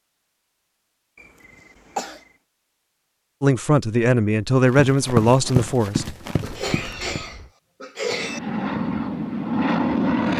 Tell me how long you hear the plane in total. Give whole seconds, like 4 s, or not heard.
2 s.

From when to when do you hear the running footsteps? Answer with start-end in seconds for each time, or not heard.
4.7-7.2.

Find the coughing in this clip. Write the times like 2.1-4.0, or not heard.
1.1-2.2, 6.4-8.4.